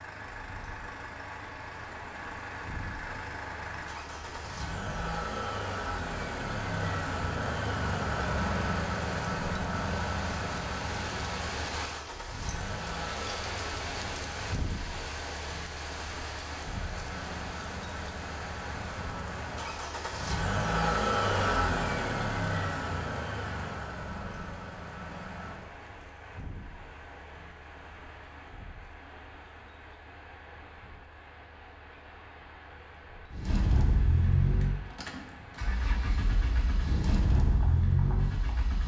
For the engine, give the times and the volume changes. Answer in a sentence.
The engine can be heard from 0.0 to 14.6 s, getting louder then quieter; from 16.5 to 25.7 s, getting louder then quieter; and from 33.3 to 38.8 s, getting quieter then louder.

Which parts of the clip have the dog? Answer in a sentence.
The dog can't be heard in this clip.